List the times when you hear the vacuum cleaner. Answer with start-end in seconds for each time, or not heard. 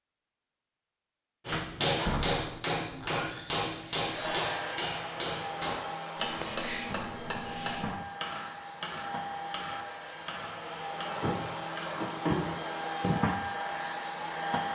4.0-14.6.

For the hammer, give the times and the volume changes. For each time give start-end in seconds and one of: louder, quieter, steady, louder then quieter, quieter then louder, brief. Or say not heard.
1.4-12.1 quieter.